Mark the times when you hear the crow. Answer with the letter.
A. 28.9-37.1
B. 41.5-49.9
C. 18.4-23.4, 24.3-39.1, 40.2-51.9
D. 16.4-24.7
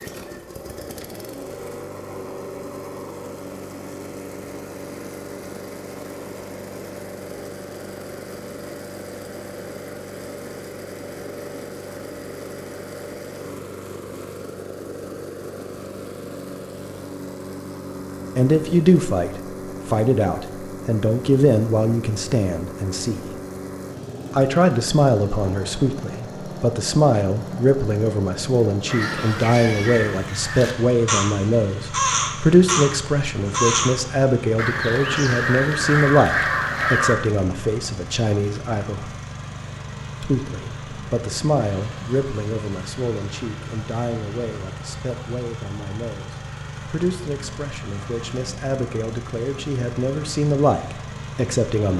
A.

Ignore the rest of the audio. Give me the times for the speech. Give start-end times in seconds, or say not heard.
18.4-23.4, 24.3-39.1, 40.2-51.9.